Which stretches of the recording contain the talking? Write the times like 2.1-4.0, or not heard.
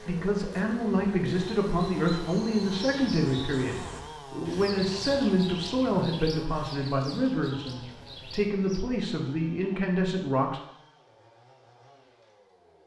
0.1-10.6.